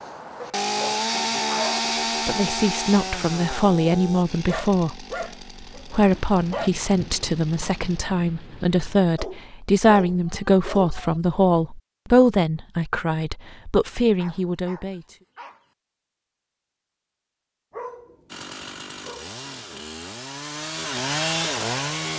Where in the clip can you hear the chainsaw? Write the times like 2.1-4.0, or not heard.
0.0-8.0, 18.2-22.1.